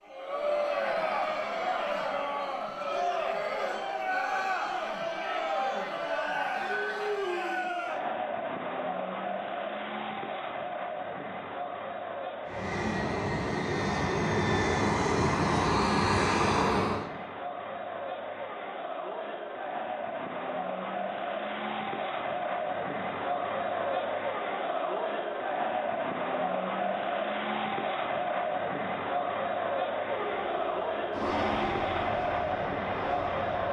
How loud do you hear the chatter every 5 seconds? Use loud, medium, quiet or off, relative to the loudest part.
loud, loud, medium, medium, loud, loud, loud.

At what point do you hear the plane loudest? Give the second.
16 s.